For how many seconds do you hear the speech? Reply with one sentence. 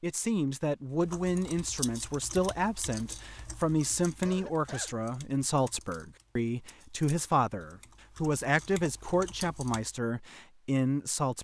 The speech can be heard for 11 seconds in total.